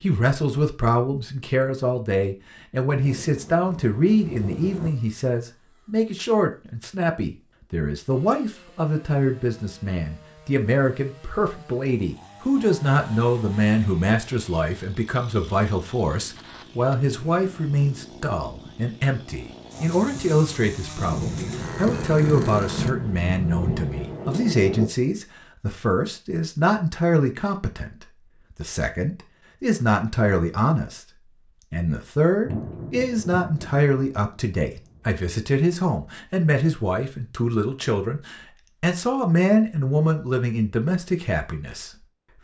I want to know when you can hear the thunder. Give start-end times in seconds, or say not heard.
2.9-4.9, 20.9-24.9, 32.4-35.0.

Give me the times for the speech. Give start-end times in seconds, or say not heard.
0.0-31.0, 31.7-42.0.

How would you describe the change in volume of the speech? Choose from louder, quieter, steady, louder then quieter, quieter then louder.
steady.